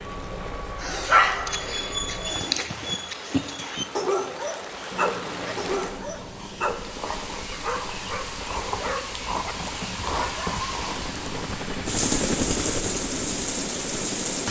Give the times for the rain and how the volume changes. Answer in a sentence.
The rain can be heard from 0.0 to 14.4 s, getting louder.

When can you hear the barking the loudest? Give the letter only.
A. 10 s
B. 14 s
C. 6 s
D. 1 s
D.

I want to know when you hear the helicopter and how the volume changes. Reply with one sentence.
The helicopter can be heard briefly from 0.0 to 2.4 s; and from 4.9 to 14.4 s, getting louder.